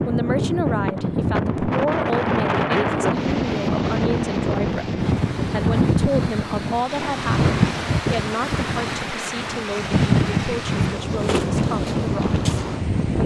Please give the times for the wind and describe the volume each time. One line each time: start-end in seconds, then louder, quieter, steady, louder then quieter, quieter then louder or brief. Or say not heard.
0.0-13.2 steady.